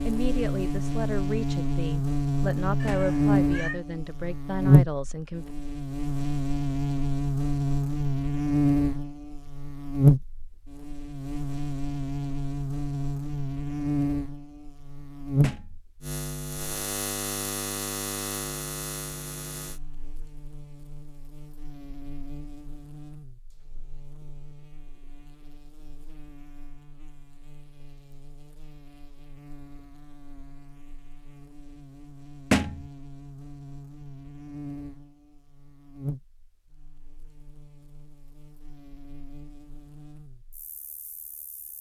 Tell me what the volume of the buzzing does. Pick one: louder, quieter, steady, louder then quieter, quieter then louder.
quieter then louder.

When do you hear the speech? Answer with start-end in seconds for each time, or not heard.
0.1-5.5.